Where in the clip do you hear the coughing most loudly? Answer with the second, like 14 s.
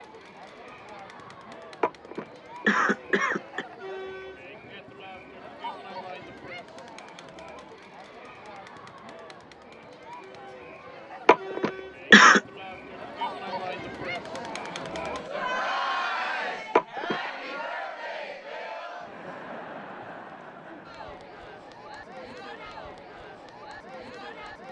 12 s.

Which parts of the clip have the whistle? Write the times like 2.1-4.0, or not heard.
not heard.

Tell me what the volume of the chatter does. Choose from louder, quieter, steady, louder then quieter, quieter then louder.
louder then quieter.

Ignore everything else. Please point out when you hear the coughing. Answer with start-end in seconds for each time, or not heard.
1.8-3.6, 11.2-12.4, 16.8-17.2.